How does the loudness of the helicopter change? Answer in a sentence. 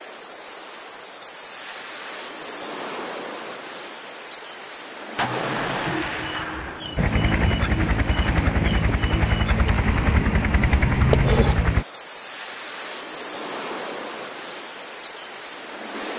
The loudness of the helicopter stays about the same.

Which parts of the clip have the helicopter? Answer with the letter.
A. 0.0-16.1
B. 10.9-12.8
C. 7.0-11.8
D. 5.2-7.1
C.